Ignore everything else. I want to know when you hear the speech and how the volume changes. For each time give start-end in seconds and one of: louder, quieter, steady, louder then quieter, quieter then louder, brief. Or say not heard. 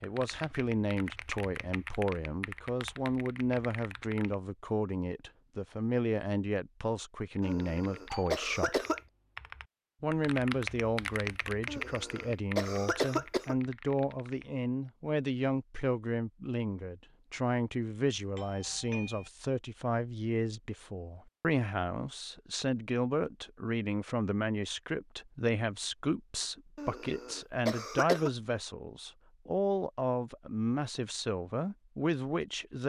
0.0-8.8 steady
10.0-32.8 steady.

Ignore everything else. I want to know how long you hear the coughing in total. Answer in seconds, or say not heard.
5 s.